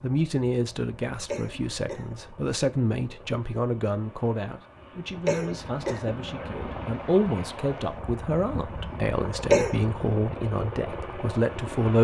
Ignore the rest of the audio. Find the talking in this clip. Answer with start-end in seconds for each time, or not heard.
0.0-11.9.